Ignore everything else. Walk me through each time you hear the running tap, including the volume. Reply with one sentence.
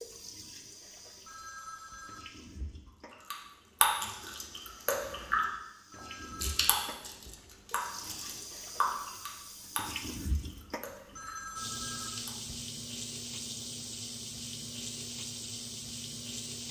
The running tap can be heard from 0.0 to 16.6 s, getting louder.